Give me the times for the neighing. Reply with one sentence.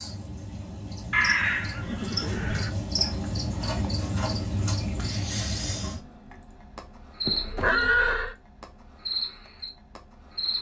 You can hear the neighing from 1.1 to 2.7 s and from 7.2 to 8.3 s.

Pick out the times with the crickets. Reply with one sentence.
The crickets can be heard from 0.0 to 10.5 s.